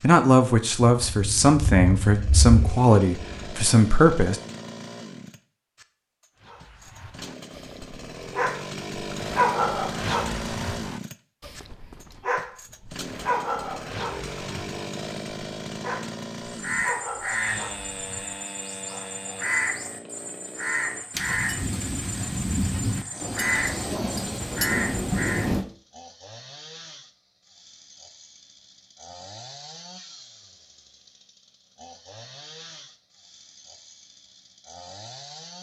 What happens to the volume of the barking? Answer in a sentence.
The loudness of the barking goes up, then down.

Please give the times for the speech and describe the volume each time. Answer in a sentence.
You can hear the speech from 0.0 to 4.4 s, at a steady volume.